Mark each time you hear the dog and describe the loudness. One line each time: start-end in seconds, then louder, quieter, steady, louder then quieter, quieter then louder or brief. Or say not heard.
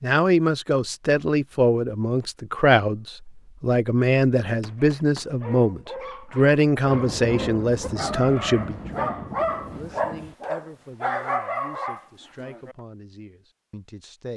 4.5-12.8 louder.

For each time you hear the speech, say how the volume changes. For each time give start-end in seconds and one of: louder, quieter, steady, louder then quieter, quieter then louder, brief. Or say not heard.
0.0-14.3 quieter.